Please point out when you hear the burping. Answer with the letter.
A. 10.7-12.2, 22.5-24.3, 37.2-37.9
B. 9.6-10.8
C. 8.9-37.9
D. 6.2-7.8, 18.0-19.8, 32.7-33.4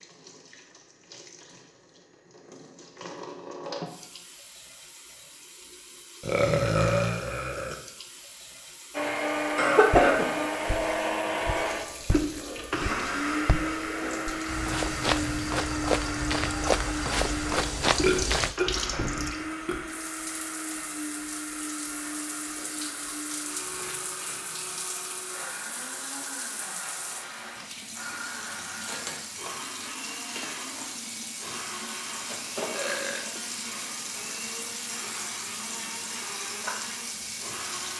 D.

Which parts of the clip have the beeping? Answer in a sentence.
You can't hear the beeping here.